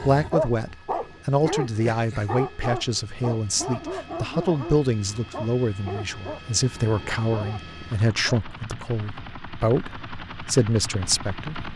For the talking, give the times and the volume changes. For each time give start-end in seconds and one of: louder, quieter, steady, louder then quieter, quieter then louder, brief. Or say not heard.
0.0-11.7 steady.